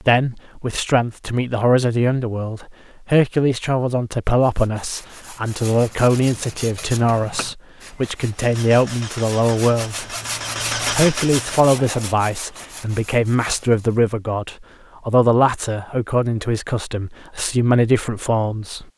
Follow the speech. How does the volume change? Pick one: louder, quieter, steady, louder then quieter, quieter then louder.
steady.